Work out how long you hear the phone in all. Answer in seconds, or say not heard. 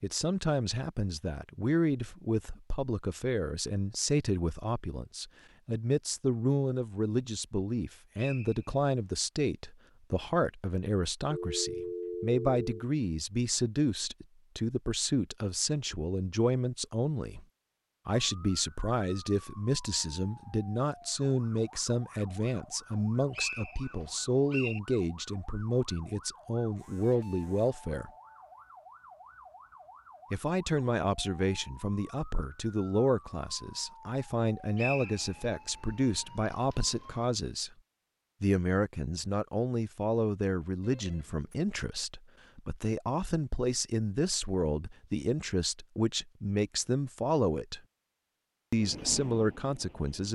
2 s.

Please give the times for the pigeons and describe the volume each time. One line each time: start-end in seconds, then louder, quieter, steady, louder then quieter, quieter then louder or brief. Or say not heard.
not heard.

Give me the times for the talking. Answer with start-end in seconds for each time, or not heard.
0.0-17.4, 18.1-28.1, 30.3-37.7, 38.4-47.8, 48.7-50.3.